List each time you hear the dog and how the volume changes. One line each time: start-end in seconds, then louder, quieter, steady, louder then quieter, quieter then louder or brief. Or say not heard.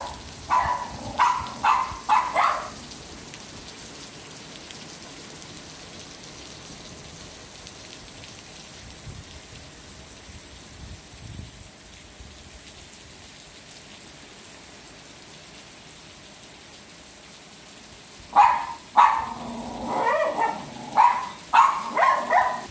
0.0-2.7 brief
18.3-22.6 quieter then louder.